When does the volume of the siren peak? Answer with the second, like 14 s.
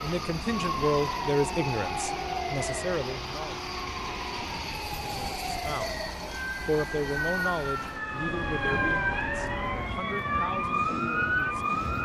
11 s.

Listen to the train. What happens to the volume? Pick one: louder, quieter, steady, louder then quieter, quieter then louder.
steady.